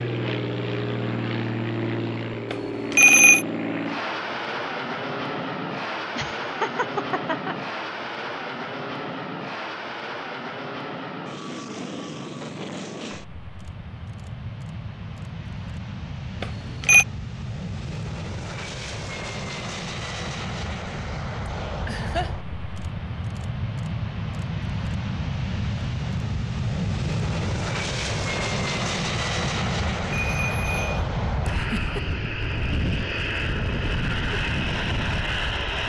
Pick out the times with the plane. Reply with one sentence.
The plane can be heard from 0.0 to 35.8 s.